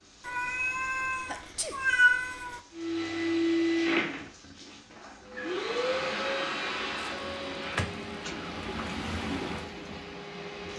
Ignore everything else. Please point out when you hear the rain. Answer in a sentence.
You can hear the rain from 0.0 to 10.7 s.